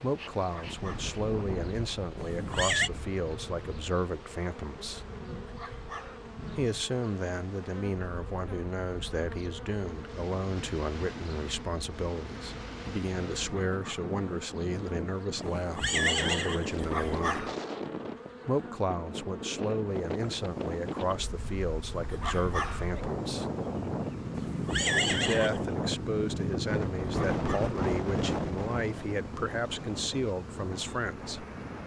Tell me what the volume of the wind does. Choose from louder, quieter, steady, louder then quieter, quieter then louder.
louder.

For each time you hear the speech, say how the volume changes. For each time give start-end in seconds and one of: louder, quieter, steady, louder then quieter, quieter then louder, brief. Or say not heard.
0.0-5.0 steady
6.5-17.4 steady
18.4-23.4 steady
25.1-31.4 steady.